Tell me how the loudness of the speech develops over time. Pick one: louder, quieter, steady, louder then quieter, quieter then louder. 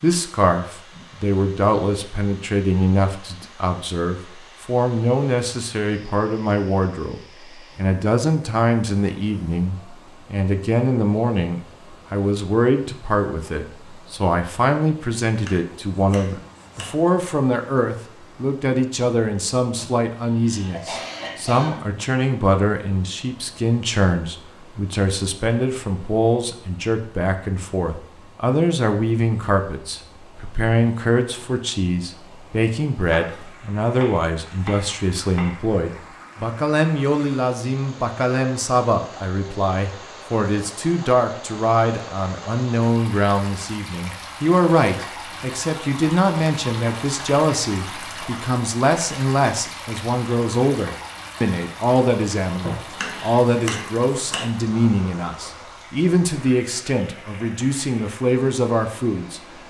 steady.